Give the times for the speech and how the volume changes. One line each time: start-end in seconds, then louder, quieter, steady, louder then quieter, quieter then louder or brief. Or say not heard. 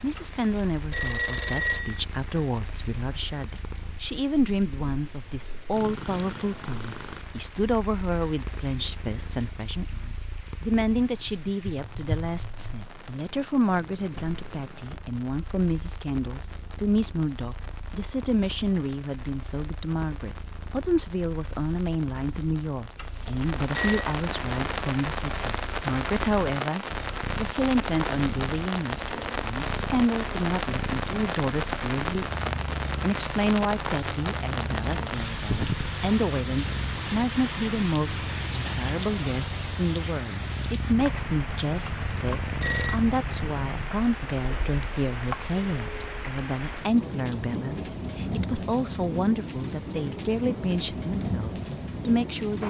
0.0-52.6 steady.